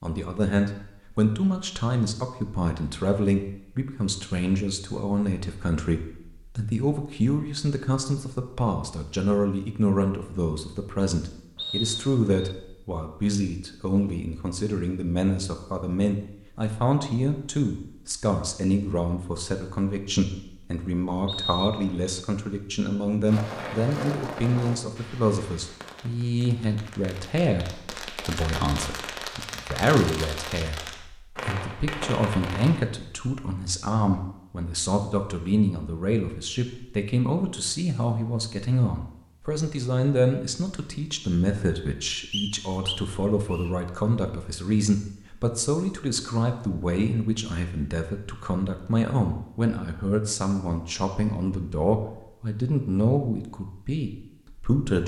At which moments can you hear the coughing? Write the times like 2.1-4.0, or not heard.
not heard.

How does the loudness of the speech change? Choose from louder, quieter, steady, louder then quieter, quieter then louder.
steady.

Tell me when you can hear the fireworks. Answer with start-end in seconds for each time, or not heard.
23.2-32.9.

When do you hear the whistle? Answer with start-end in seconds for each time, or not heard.
11.6-12.6, 21.2-22.2, 42.3-43.7.